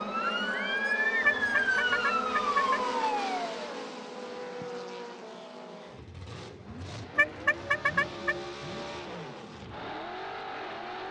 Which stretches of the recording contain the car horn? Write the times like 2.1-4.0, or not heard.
1.2-2.9, 7.2-8.4.